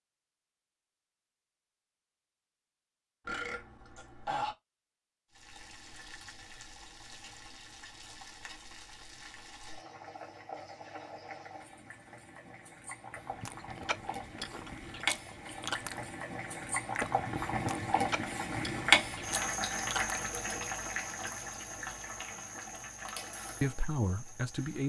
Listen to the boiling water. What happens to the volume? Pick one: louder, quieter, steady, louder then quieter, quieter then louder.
louder then quieter.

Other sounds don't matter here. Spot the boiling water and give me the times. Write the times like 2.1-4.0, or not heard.
5.3-24.8.